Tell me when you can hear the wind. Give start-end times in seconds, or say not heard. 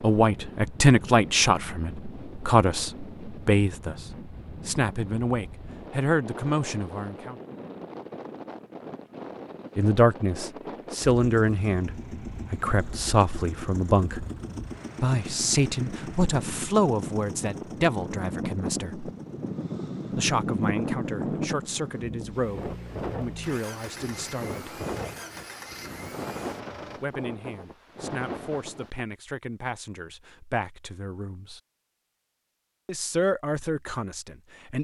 0.0-29.1.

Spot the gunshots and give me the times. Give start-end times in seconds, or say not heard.
not heard.